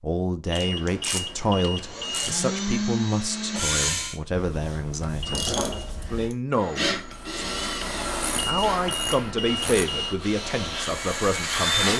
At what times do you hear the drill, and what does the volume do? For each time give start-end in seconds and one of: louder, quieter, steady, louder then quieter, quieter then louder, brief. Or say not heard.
1.9-4.2 brief
6.5-11.9 quieter then louder.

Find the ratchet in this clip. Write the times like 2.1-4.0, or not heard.
0.6-2.4, 4.3-6.3, 8.2-9.9.